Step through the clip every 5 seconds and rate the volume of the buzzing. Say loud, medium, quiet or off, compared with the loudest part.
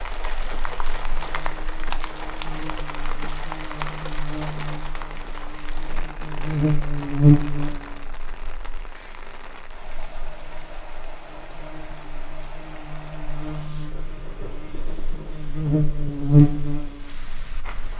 quiet, loud, quiet, loud.